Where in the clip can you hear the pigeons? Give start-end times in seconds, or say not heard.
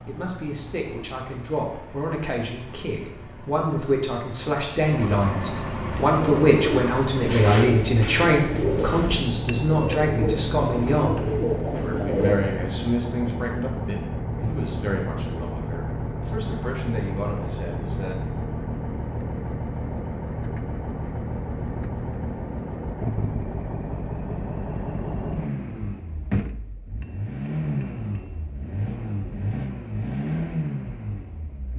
5.8-12.4.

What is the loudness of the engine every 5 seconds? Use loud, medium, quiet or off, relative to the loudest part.
quiet, loud, loud, loud, loud, loud, loud.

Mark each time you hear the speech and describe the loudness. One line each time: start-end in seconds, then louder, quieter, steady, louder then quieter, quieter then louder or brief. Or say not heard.
0.1-18.1 louder then quieter.